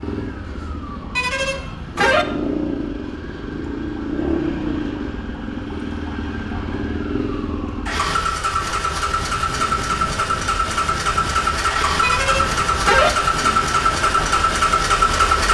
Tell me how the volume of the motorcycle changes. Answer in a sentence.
The volume of the motorcycle goes up.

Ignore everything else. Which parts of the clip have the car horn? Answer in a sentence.
The car horn can be heard from 1.1 to 2.2 s and from 12.0 to 13.1 s.